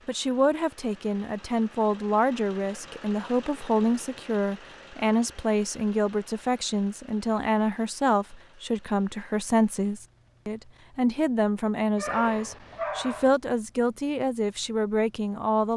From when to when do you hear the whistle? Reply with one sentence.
You can't hear the whistle here.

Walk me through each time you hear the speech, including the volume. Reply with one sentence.
The speech can be heard from 0.1 to 15.7 s, at a steady volume.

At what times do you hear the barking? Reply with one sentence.
The barking can be heard from 11.9 to 13.3 s.